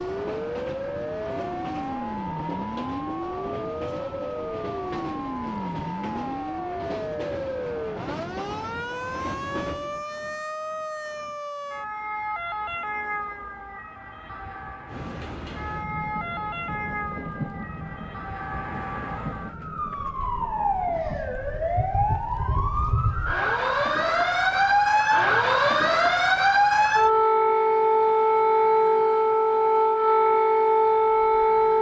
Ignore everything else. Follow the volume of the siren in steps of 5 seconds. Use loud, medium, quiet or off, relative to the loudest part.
quiet, quiet, quiet, quiet, medium, loud, loud.